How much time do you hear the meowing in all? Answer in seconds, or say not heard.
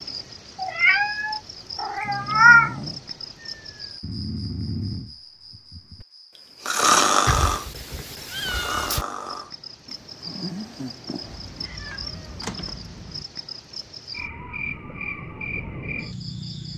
6 s.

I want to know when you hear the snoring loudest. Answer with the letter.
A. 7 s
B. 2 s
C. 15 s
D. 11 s
A.